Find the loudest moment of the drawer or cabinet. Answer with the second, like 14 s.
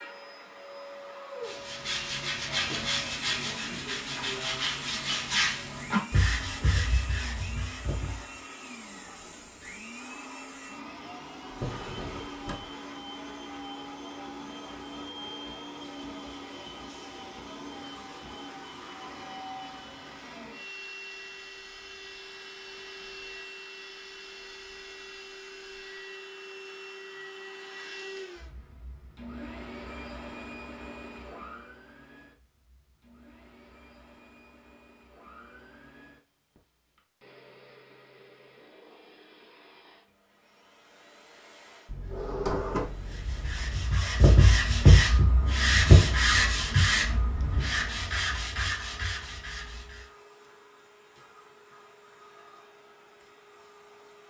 43 s.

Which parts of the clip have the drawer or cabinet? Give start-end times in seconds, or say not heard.
11.5-12.7, 41.9-43.9.